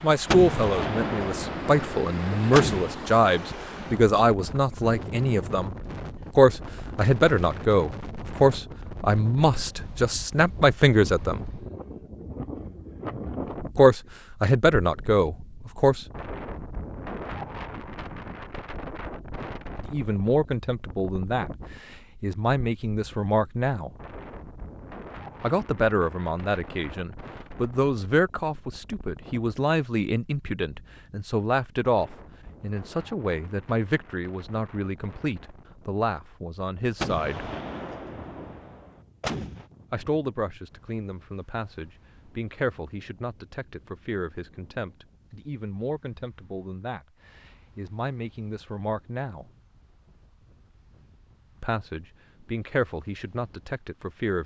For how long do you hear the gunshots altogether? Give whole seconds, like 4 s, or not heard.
5 s.